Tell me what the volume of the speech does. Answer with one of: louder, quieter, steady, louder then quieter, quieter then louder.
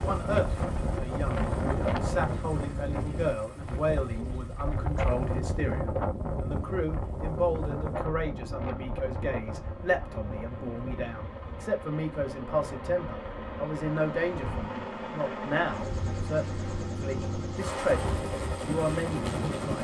steady.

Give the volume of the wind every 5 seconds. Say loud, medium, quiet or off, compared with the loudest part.
loud, loud, medium, medium.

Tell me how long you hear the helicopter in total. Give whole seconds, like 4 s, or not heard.
20 s.